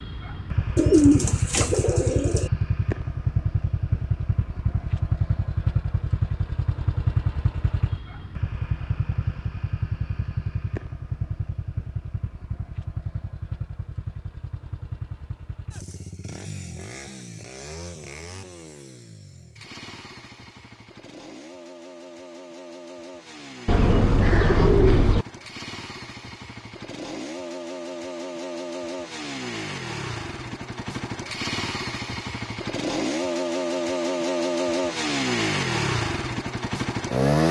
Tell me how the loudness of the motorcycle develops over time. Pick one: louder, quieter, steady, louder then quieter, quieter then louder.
quieter then louder.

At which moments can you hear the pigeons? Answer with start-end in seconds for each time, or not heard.
0.8-2.5, 23.6-25.2.